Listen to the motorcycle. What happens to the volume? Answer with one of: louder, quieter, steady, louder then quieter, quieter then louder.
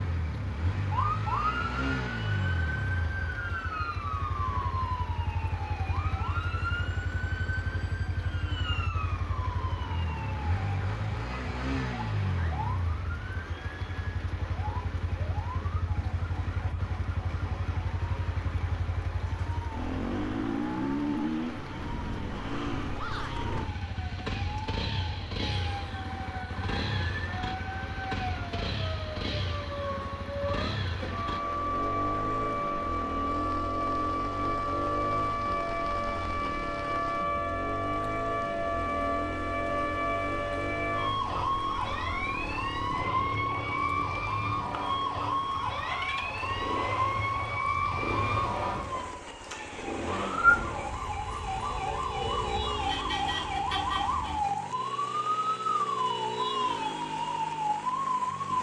steady.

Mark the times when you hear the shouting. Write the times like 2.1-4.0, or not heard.
22.9-23.5.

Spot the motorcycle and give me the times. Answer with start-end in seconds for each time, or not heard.
0.0-58.5.